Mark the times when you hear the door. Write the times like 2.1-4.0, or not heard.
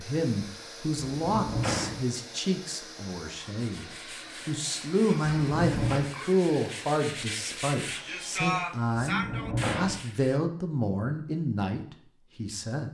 1.1-2.0, 5.2-6.0, 9.1-10.0.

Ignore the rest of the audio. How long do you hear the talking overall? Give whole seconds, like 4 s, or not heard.
13 s.